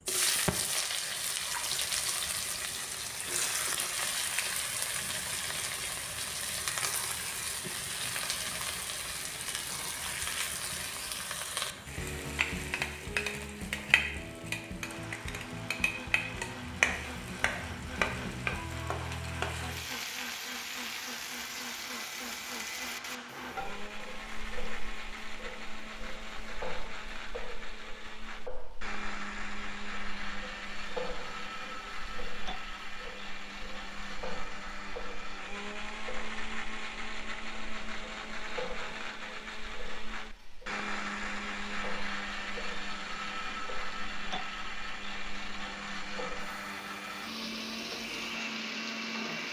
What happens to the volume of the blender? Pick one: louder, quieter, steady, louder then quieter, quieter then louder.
louder.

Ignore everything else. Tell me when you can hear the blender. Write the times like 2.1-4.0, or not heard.
14.8-49.4.